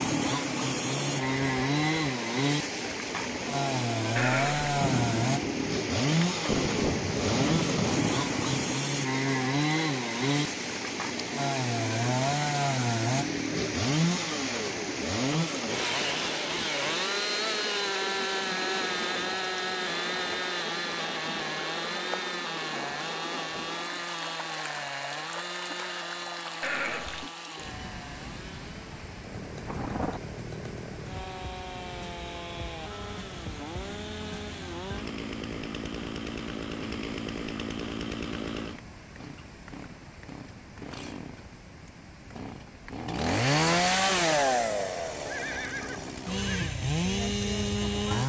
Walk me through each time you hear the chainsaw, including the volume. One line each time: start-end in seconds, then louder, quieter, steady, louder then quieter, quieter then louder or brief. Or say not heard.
0.0-48.2 quieter then louder.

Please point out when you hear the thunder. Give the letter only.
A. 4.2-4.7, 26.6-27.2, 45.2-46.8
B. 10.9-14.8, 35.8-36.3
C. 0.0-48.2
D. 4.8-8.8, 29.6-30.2
D.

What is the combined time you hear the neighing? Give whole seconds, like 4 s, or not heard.
3 s.